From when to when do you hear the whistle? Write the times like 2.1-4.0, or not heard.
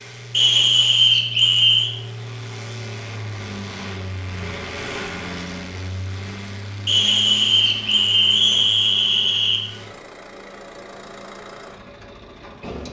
0.3-1.9, 6.8-9.6.